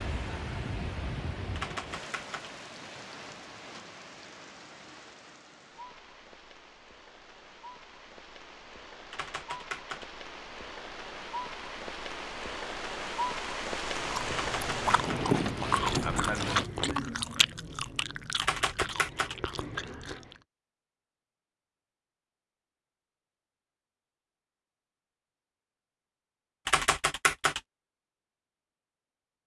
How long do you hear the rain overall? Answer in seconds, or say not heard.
17 s.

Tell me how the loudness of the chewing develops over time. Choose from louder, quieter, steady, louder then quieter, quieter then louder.
louder then quieter.